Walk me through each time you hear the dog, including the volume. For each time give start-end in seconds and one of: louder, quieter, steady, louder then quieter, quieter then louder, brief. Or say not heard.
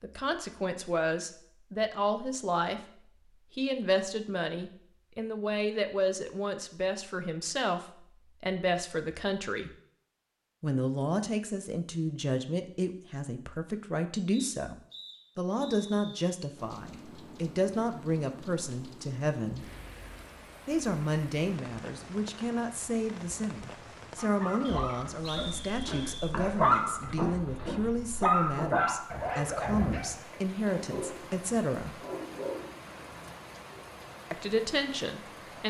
24.1-33.8 louder then quieter.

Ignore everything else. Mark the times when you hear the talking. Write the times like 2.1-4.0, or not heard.
0.0-2.8, 3.5-9.7, 10.6-14.8, 15.3-19.6, 20.6-32.0, 34.3-35.6.